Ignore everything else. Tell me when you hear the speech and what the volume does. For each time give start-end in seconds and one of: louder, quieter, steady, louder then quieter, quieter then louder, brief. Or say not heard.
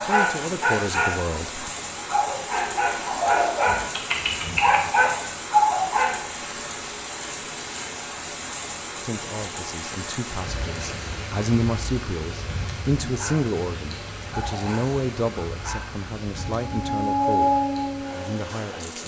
0.0-1.6 brief
8.9-19.0 louder then quieter.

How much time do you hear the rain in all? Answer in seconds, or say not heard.
19 s.